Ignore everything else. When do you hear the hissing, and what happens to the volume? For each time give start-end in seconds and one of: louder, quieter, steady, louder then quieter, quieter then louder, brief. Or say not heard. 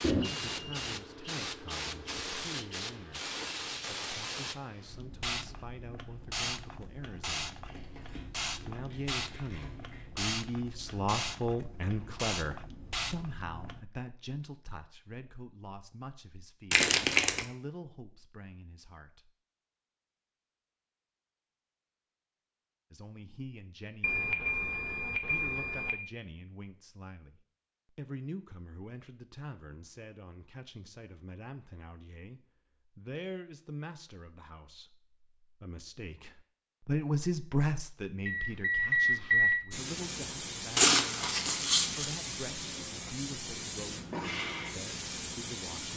0.0-13.8 steady
39.7-45.9 steady.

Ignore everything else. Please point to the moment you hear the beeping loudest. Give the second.
39 s.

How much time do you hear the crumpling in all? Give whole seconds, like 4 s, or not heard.
5 s.